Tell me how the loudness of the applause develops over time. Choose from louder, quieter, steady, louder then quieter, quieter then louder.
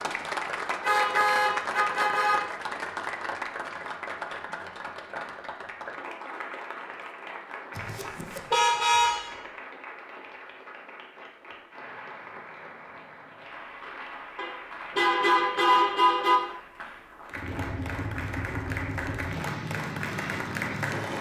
quieter then louder.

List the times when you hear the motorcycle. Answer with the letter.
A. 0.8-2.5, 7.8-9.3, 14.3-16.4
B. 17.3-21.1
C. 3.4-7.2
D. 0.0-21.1
B.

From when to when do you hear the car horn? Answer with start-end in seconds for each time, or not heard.
0.8-2.5, 7.8-9.3, 14.3-16.4.